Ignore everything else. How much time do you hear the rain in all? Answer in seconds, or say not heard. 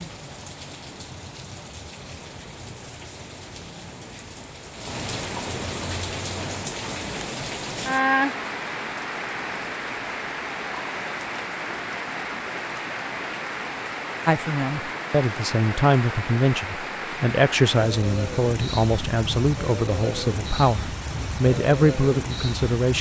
23 s.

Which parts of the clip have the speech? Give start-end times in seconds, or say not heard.
14.2-22.9.